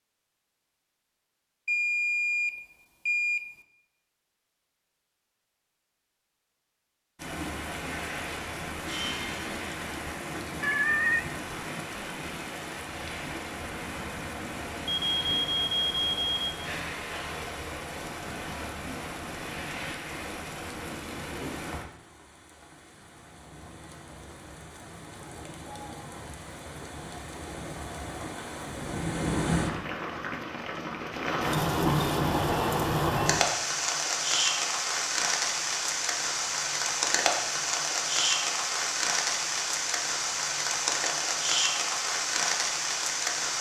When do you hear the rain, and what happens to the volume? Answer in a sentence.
The rain can be heard from 7.2 to 43.5 s, getting quieter then louder.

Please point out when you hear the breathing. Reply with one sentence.
The breathing can't be heard in this clip.